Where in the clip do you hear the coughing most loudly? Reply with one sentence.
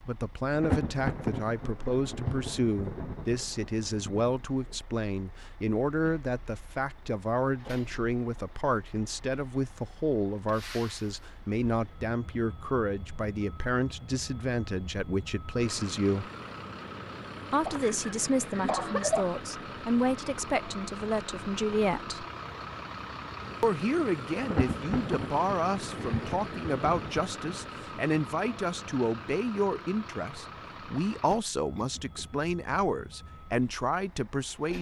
The volume of the coughing peaks at 19 seconds.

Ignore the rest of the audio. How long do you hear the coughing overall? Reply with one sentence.
You can hear the coughing for 3 seconds altogether.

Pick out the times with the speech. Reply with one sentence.
You can hear the speech from 0.1 to 16.3 s, from 17.5 to 22.2 s and from 23.6 to 34.7 s.